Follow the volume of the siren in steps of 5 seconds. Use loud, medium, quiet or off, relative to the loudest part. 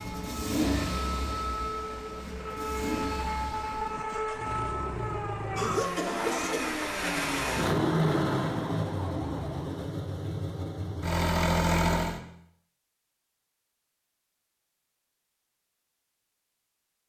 loud, loud, off, off.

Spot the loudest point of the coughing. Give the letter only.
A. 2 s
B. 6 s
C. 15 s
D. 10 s
B.